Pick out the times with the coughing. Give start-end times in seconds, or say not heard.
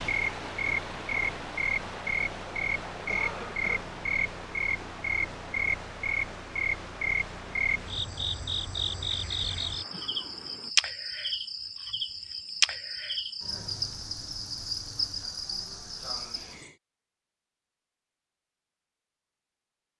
3.0-3.9.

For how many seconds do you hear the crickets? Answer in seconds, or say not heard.
17 s.